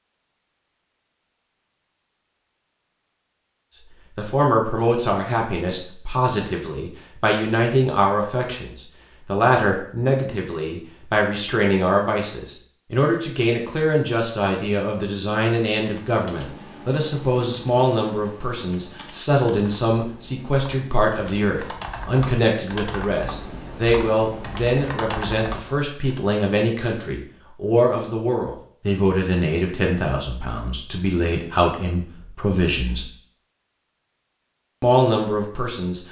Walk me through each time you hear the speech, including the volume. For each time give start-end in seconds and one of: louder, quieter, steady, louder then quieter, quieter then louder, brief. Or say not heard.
4.2-33.0 steady
34.8-36.0 brief.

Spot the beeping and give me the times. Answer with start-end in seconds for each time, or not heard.
not heard.